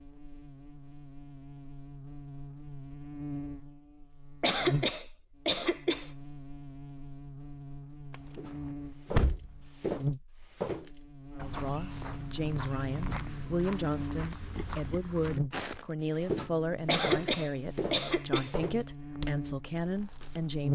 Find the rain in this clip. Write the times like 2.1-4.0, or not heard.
not heard.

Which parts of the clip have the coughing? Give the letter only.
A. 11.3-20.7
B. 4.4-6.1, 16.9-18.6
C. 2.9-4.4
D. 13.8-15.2
B.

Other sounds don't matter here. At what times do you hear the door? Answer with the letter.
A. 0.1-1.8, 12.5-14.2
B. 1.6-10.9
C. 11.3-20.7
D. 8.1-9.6
D.